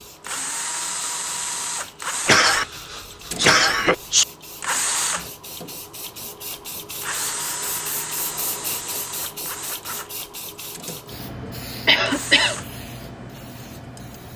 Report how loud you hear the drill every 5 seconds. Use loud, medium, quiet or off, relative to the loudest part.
loud, loud, medium.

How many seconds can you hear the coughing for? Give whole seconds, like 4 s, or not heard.
3 s.